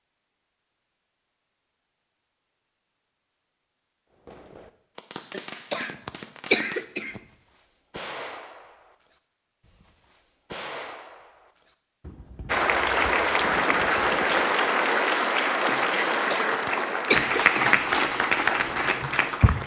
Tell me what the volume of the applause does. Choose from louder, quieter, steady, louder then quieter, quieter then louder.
steady.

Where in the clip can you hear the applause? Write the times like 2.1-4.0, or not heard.
12.4-19.6.